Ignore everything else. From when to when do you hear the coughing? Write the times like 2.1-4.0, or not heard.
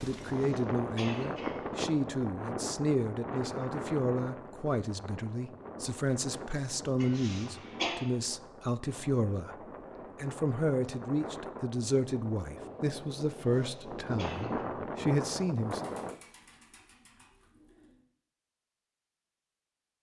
0.1-1.7, 7.0-8.0, 13.3-14.7.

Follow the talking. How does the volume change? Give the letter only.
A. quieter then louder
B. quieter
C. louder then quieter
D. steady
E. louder
D.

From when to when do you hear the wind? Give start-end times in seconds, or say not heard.
0.0-16.2.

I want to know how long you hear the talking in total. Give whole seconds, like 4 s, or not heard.
15 s.